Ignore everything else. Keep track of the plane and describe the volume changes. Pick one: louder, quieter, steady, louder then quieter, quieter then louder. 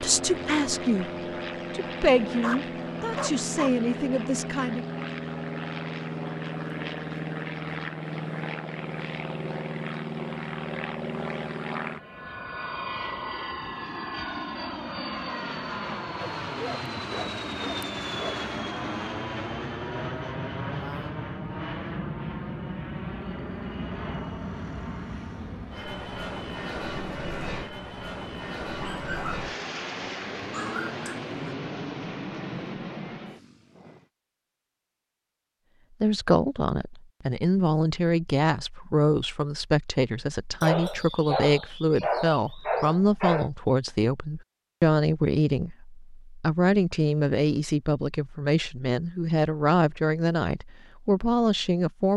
steady.